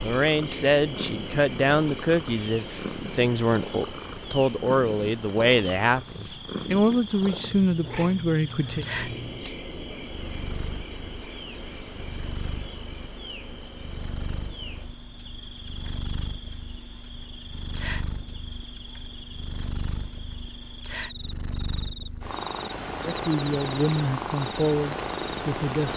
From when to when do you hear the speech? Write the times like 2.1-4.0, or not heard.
0.0-8.8, 23.1-25.9.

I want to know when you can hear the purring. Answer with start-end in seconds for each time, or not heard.
0.2-25.9.